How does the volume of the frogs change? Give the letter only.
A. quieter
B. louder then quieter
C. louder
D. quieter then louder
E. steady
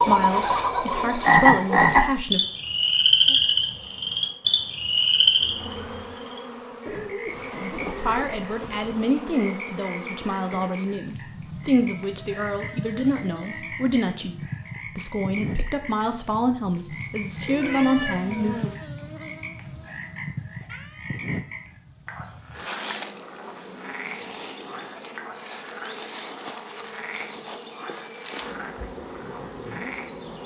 A.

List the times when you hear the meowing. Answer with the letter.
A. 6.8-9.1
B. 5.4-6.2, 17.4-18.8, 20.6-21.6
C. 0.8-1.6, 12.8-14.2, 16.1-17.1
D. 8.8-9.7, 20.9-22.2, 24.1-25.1
B.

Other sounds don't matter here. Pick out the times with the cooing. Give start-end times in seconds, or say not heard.
6.8-9.1.